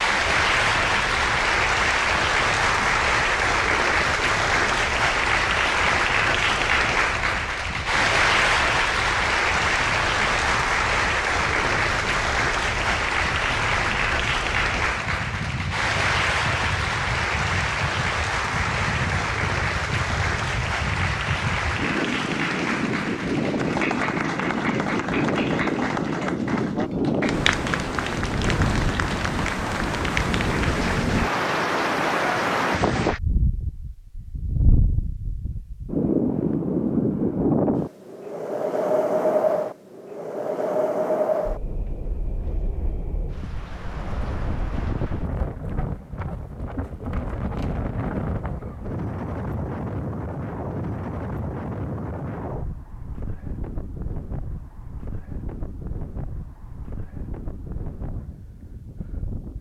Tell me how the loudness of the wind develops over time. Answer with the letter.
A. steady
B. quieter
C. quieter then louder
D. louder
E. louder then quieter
E.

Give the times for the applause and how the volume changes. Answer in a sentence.
You can hear the applause from 0.0 to 33.2 s, getting quieter.